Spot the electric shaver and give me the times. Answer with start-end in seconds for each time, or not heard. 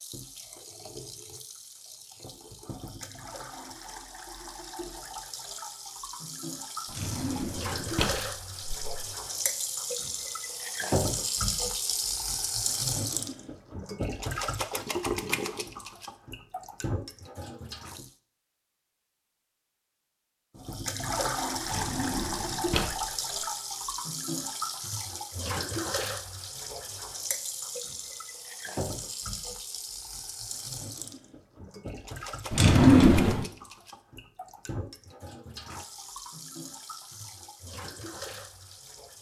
not heard.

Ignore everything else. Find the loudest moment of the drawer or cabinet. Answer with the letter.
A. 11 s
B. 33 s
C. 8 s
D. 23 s
B.